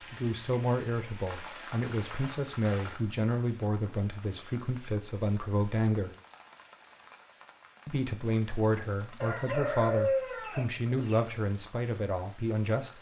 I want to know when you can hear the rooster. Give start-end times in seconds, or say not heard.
9.2-11.2.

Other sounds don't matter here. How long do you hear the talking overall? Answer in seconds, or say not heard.
11 s.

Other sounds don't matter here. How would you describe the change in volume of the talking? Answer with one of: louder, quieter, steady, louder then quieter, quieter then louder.
steady.